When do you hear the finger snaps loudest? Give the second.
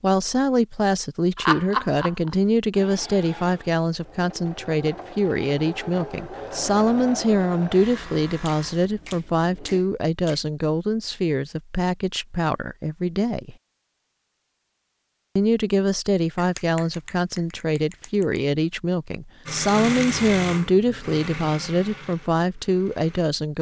2 s.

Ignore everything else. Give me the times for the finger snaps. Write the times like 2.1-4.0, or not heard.
1.4-2.4, 8.4-10.4, 16.4-18.4.